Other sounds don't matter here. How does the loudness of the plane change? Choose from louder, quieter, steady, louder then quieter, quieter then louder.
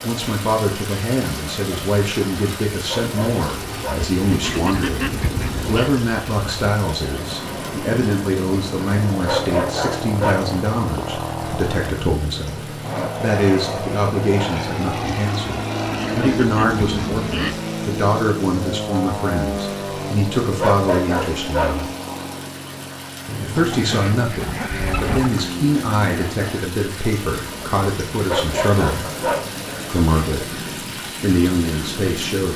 louder then quieter.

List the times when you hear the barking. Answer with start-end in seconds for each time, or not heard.
2.9-4.1, 9.2-10.5, 20.6-21.8, 28.2-29.5.